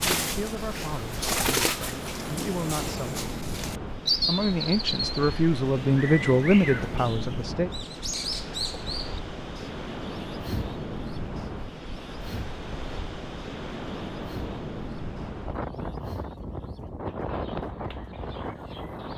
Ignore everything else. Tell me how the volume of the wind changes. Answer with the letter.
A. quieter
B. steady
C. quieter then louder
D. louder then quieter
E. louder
B.